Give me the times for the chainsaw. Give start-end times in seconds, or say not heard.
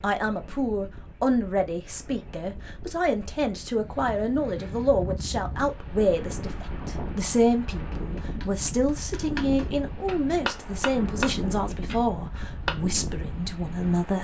not heard.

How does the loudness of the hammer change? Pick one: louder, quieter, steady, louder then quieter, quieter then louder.
louder then quieter.